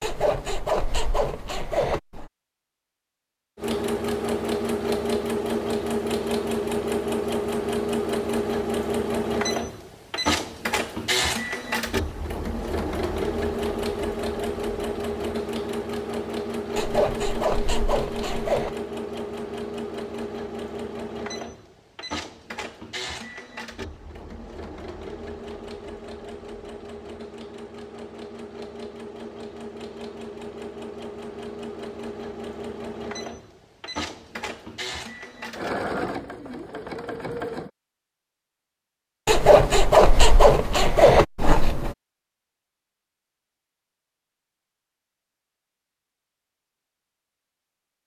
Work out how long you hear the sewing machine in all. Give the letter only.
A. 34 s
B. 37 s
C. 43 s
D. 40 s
A.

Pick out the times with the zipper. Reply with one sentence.
You can hear the zipper from 0.0 to 2.3 s, from 16.8 to 18.8 s and from 39.2 to 42.0 s.